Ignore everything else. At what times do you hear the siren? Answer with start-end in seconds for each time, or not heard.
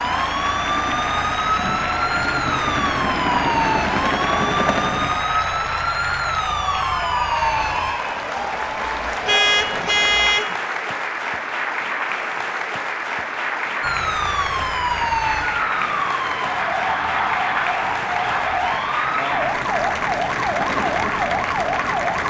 0.0-8.0, 13.8-22.2.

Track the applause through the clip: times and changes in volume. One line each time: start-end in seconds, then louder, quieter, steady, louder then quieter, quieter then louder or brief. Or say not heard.
0.0-22.2 steady.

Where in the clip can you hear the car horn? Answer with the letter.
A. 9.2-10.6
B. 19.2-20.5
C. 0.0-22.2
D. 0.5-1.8
A.